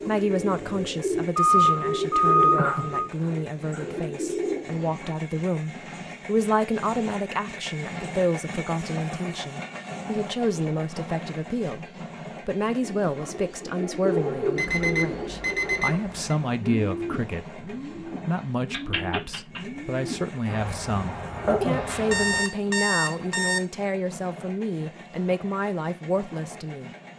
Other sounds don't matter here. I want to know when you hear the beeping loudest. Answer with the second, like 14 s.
2 s.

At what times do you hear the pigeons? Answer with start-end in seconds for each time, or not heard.
0.0-5.2, 12.8-22.4.